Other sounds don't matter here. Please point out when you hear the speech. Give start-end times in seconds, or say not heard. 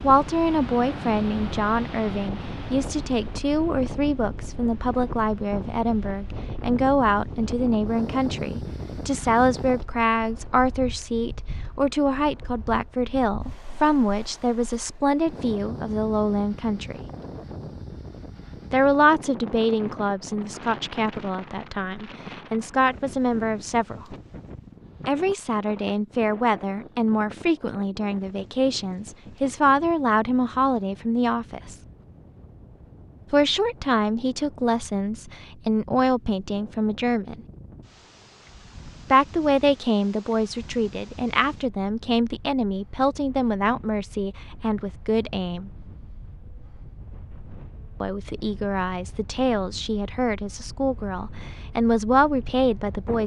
0.0-17.1, 18.7-24.1, 25.1-31.8, 33.3-37.4, 39.1-45.7, 48.0-53.2.